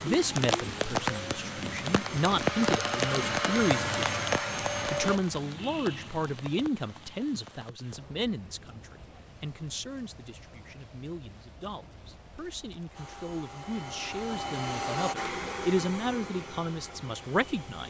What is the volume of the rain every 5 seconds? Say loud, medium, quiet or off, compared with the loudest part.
loud, quiet, quiet, quiet.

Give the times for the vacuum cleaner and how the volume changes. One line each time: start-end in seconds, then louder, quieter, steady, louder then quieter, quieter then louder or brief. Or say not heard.
0.0-5.2 louder
12.9-17.8 louder then quieter.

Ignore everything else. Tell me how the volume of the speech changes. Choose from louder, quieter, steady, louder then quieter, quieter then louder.
quieter then louder.